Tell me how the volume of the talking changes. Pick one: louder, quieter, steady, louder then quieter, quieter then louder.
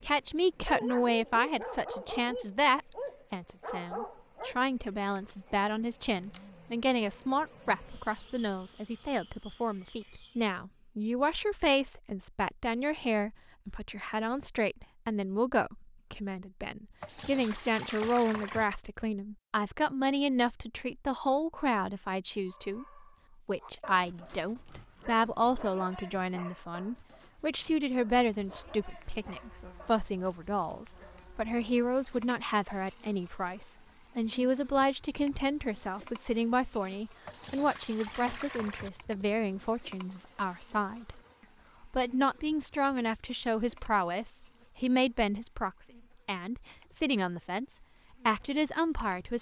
steady.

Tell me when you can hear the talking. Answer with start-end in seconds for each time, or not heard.
0.0-41.2, 41.8-49.3.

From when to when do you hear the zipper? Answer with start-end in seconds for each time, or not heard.
not heard.